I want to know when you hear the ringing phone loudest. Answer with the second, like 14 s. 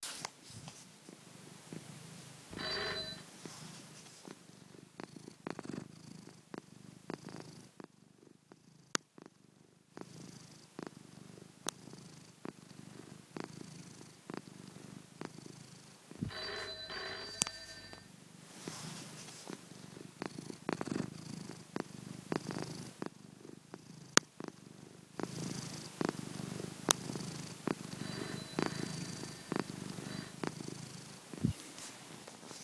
3 s.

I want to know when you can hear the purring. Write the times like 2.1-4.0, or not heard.
0.0-32.5.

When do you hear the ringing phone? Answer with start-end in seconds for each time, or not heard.
2.5-3.2, 16.2-18.1, 27.9-30.4.